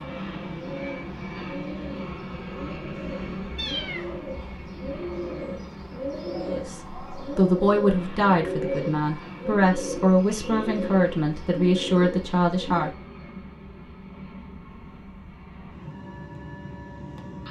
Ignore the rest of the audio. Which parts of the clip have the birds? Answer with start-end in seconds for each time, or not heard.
0.0-12.9.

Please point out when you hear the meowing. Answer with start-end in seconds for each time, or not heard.
3.5-4.7.